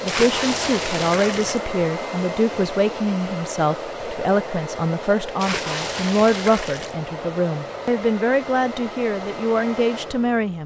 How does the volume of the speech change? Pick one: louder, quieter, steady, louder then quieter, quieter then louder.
steady.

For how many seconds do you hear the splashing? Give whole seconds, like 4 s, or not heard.
3 s.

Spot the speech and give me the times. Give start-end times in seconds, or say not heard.
0.0-10.6.